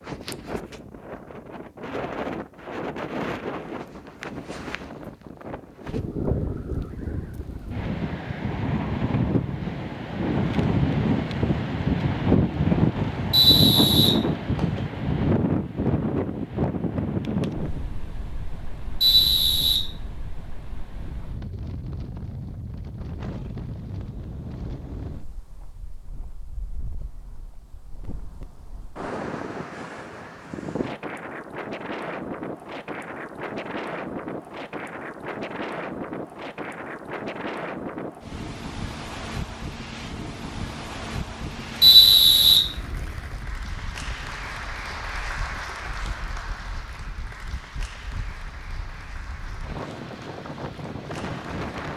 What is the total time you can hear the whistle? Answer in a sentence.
You can hear the whistle for 3 seconds altogether.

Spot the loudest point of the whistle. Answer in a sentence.
The volume of the whistle peaks at 42 seconds.